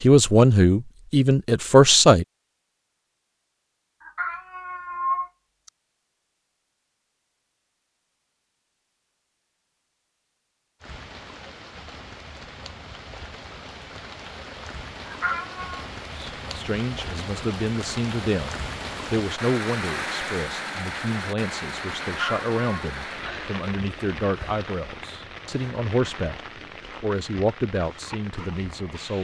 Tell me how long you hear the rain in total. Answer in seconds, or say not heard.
18 s.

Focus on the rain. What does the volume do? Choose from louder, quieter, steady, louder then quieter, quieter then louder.
louder then quieter.